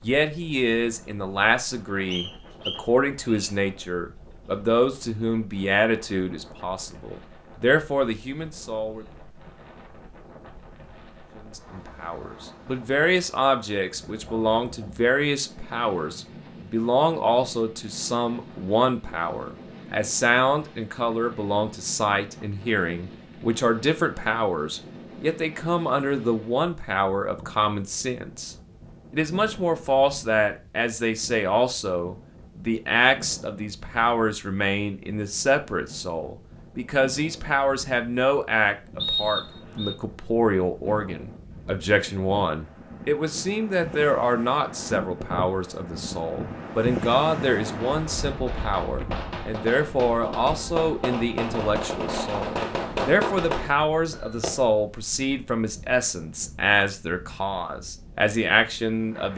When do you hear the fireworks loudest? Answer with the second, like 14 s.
53 s.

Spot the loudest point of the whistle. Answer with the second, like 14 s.
39 s.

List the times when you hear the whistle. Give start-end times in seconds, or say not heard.
2.1-3.5, 39.0-40.0.